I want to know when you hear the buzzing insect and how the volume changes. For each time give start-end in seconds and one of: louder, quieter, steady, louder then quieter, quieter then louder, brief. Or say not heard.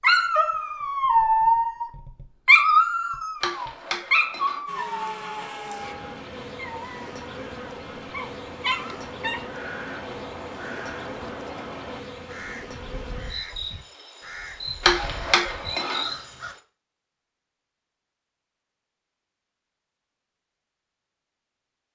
4.7-16.6 steady.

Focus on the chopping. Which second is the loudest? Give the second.
15 s.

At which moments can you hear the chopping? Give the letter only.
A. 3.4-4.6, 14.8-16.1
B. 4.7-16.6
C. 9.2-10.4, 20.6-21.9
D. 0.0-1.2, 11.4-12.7
A.